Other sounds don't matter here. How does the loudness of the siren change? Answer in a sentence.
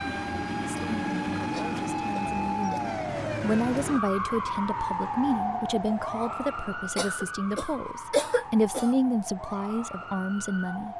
The volume of the siren goes down.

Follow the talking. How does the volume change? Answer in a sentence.
The loudness of the talking goes up.